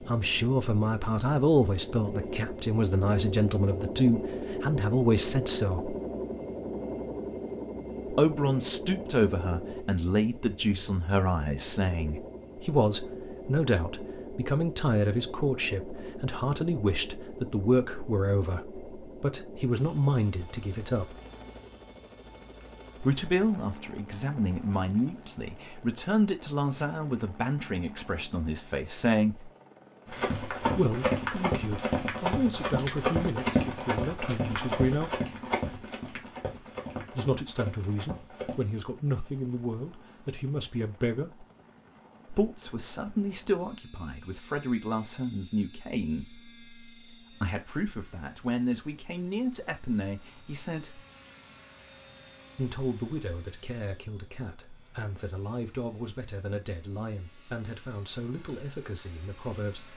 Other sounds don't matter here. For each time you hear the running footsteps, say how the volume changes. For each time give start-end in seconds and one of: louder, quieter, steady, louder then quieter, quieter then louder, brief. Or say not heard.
30.1-38.6 quieter.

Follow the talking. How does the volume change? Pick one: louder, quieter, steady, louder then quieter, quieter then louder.
quieter.